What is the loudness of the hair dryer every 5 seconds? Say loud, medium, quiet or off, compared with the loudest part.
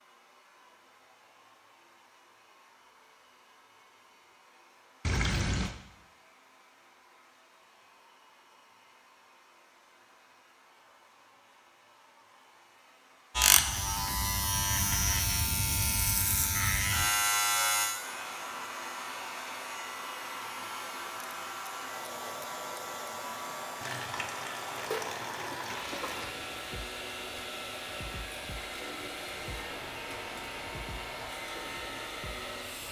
quiet, quiet, quiet, loud, loud, loud, loud.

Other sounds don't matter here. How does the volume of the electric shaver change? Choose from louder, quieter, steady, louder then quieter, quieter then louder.
quieter.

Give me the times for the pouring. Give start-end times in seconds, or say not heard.
5.0-5.8, 23.8-26.4.